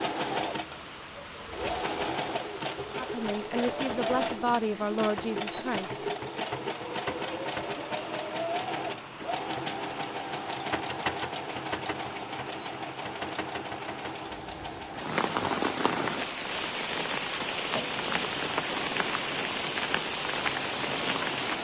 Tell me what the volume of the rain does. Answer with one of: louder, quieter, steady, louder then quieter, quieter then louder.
louder.